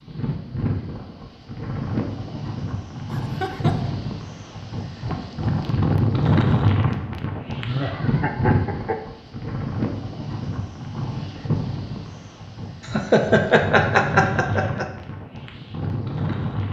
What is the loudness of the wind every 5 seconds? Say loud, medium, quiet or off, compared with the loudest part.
medium, loud, medium, medium.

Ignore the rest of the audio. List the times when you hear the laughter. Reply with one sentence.
The laughter can be heard from 3.1 to 3.9 s, from 7.6 to 9.0 s and from 12.9 to 14.8 s.